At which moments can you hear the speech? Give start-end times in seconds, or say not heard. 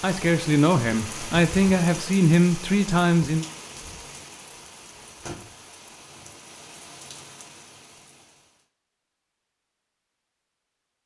0.0-3.5.